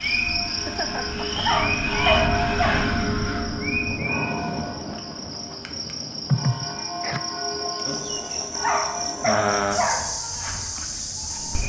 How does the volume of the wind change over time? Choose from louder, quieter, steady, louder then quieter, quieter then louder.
quieter.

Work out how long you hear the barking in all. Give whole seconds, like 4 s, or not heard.
3 s.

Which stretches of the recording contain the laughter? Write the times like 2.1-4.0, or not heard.
0.5-1.6, 6.2-7.2.